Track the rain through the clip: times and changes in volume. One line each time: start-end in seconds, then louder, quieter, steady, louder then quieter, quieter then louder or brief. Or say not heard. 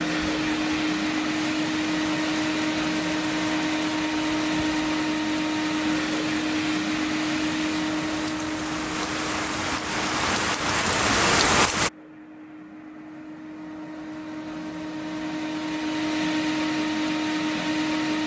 0.1-11.9 louder.